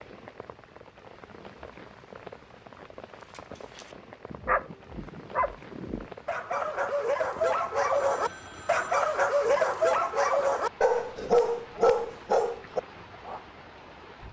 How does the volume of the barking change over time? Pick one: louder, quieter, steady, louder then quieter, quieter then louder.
louder.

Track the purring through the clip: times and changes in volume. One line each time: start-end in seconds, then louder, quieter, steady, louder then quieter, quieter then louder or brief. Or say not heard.
not heard.